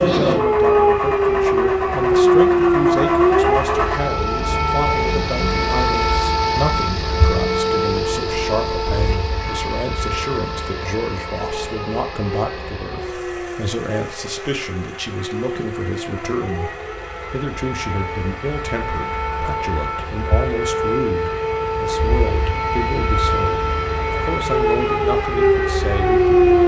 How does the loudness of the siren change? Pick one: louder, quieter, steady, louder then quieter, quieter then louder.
quieter then louder.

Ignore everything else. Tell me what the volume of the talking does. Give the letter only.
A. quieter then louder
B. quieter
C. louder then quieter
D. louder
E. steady
E.